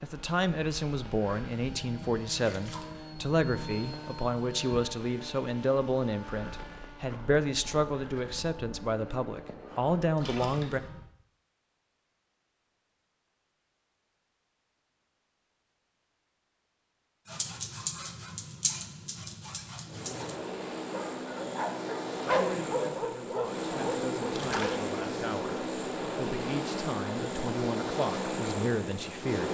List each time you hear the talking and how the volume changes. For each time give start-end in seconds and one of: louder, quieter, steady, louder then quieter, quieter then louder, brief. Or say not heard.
0.0-10.8 steady
22.3-29.4 louder.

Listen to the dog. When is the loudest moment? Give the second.
22 s.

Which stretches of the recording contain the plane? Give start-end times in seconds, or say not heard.
0.0-11.1, 19.9-29.4.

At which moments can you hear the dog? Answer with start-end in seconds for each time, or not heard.
17.2-24.8.